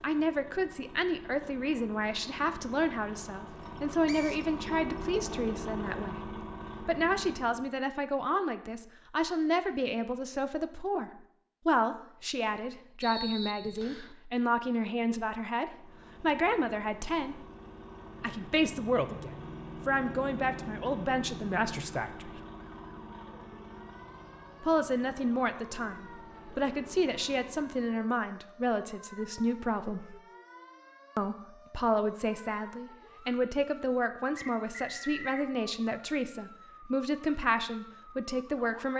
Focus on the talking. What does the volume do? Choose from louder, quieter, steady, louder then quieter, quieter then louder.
steady.